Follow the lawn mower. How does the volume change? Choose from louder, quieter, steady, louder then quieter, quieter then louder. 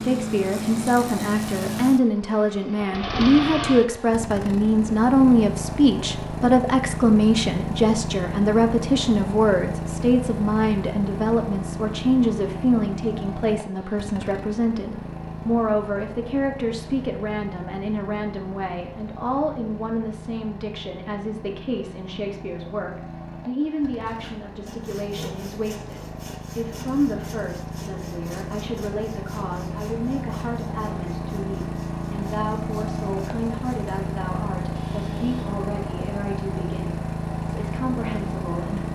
quieter then louder.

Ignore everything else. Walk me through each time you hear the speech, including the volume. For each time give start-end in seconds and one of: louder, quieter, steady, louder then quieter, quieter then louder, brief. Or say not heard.
0.0-38.8 quieter.